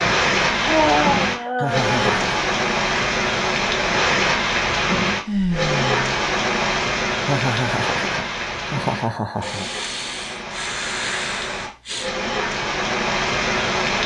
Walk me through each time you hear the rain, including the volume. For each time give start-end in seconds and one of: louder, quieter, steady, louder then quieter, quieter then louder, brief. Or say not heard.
0.0-14.0 quieter then louder.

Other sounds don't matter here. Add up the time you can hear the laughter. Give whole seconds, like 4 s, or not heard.
3 s.